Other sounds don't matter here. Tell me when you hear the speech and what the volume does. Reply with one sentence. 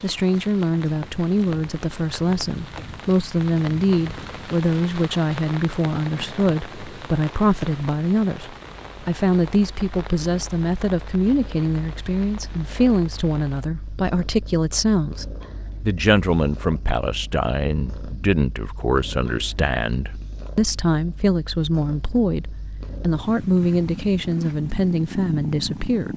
You can hear the speech from 0.0 to 26.1 s, at a steady volume.